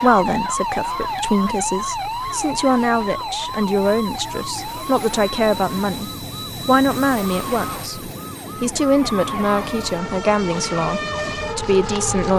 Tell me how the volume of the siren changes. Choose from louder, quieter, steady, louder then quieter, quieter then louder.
quieter then louder.